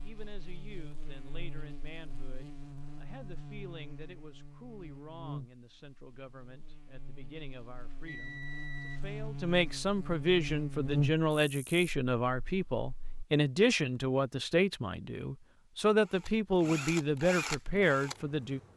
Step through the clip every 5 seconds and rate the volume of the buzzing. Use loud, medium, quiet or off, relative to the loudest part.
quiet, medium, loud, off.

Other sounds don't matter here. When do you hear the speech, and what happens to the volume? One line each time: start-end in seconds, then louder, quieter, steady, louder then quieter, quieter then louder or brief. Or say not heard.
0.0-18.7 louder.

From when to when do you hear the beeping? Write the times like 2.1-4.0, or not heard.
8.1-9.1.